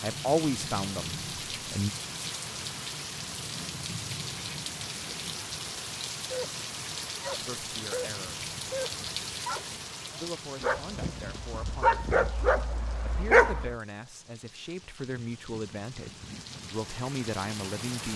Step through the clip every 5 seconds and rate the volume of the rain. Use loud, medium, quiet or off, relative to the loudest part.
loud, loud, medium, medium.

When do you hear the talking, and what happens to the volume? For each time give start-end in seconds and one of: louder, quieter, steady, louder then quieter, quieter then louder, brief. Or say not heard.
0.0-1.9 brief
7.4-8.4 brief
10.2-18.1 louder.